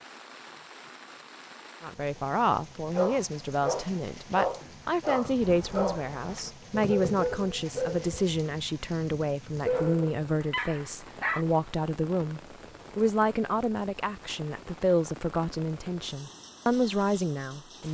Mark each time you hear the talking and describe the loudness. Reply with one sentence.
The talking can be heard from 1.8 to 17.8 s, at a steady volume.